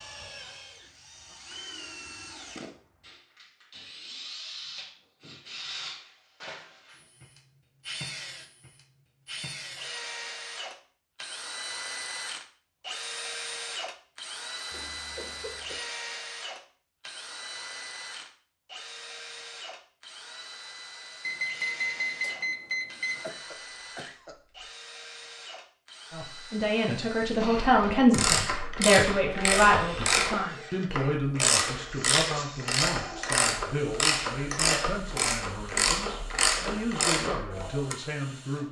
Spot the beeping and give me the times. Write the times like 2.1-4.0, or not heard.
21.2-23.2.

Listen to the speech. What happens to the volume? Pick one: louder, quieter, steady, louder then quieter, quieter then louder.
quieter.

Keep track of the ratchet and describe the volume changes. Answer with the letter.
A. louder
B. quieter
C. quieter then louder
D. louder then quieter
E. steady
E.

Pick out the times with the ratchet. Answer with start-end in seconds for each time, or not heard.
27.6-38.0.